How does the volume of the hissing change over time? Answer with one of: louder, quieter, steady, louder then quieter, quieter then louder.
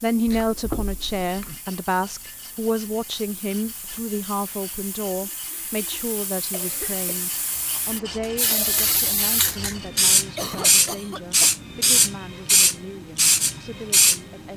louder.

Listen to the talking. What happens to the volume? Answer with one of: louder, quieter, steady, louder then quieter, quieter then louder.
quieter.